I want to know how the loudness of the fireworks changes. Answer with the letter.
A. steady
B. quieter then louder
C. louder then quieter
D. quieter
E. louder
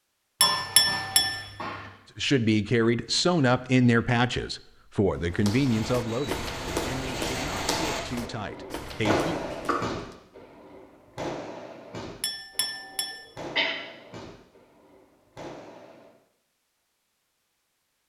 D.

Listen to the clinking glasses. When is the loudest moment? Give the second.
1 s.